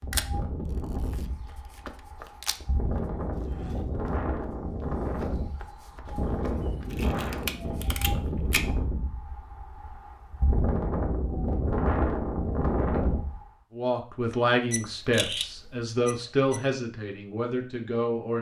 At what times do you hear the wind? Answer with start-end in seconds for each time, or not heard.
0.0-13.4.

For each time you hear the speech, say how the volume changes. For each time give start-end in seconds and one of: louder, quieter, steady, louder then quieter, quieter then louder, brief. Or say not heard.
13.8-18.3 quieter.